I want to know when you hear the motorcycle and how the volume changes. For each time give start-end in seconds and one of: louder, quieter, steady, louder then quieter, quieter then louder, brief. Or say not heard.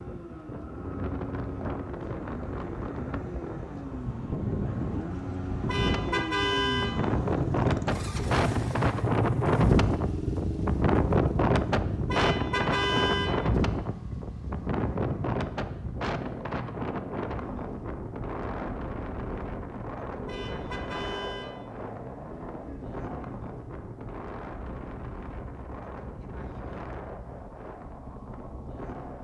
0.0-29.1 louder then quieter.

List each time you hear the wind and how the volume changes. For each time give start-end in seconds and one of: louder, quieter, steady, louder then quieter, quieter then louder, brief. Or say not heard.
0.0-29.1 louder then quieter.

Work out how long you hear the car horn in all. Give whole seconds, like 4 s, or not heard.
4 s.